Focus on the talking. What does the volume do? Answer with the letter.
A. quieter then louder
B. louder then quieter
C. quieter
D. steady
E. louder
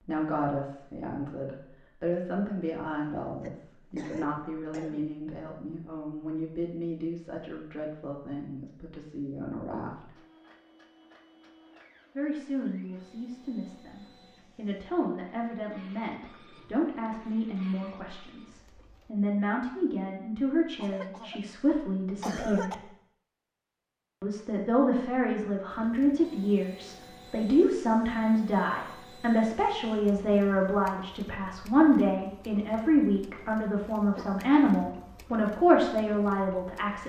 E.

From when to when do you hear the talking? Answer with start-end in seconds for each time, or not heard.
0.0-10.2, 12.2-22.8, 24.2-37.0.